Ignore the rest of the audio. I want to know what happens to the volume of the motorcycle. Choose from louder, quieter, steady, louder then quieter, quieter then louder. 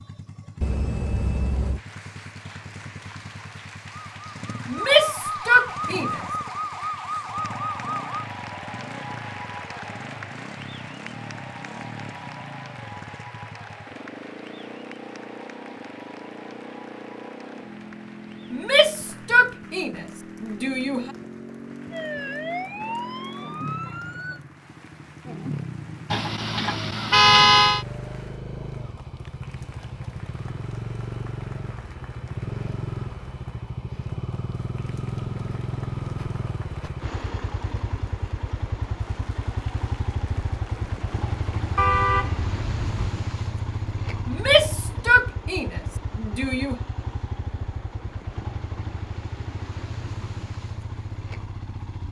louder.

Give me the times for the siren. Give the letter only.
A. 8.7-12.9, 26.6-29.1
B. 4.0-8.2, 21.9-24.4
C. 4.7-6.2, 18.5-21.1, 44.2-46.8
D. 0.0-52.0
B.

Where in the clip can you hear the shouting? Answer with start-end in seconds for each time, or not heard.
4.7-6.2, 18.5-21.1, 44.2-46.8.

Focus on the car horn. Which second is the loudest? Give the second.
27 s.